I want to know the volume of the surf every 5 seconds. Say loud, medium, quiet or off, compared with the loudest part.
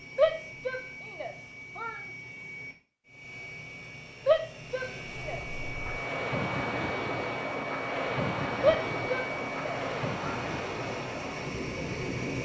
off, loud, loud.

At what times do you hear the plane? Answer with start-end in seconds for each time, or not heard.
0.0-12.4.